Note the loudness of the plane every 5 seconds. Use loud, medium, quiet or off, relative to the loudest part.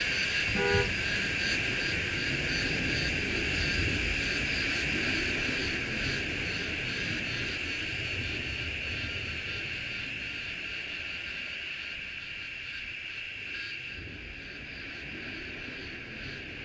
loud, loud, medium, medium.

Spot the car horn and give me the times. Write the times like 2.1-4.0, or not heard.
0.5-0.9.